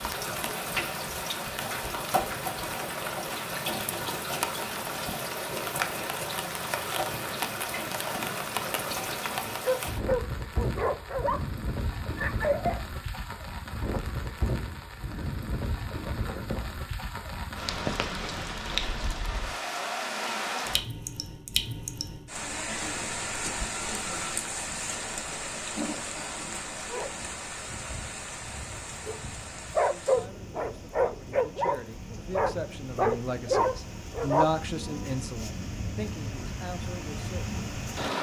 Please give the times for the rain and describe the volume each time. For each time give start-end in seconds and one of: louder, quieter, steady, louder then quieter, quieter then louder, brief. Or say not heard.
0.0-38.1 quieter.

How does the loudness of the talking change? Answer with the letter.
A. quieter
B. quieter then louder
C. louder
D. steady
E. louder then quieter
E.